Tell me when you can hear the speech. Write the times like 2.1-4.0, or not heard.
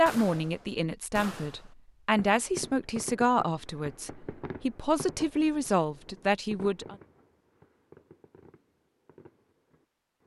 0.0-7.0.